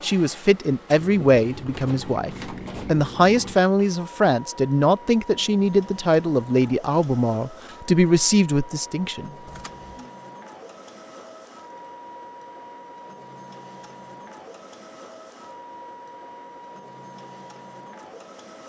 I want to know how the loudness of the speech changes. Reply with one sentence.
The volume of the speech stays about the same.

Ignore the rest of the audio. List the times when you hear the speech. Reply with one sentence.
You can hear the speech from 0.0 to 9.3 s.